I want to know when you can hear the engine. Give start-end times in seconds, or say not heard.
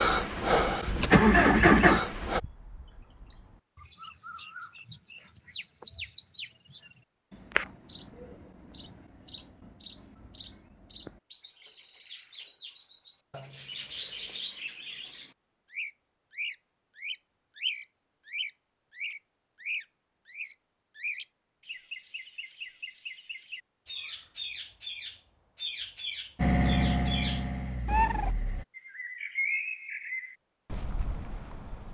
0.0-2.4, 26.4-28.6.